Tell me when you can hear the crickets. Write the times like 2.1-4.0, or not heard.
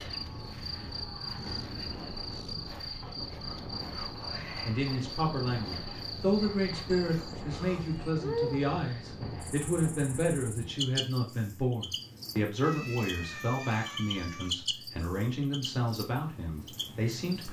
0.0-17.4.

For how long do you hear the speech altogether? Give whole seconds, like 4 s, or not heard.
13 s.